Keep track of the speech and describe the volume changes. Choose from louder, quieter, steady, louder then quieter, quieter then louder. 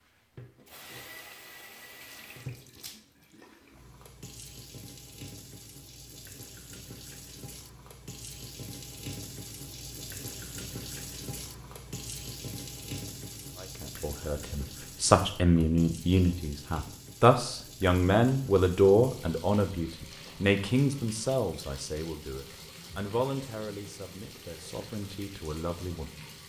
quieter.